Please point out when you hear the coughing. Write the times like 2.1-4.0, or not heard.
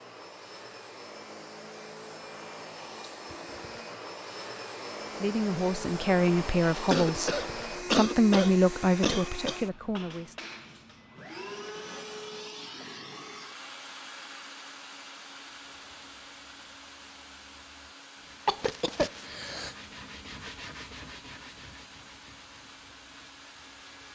6.9-9.6, 18.4-19.8.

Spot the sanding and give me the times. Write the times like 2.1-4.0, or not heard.
15.5-24.1.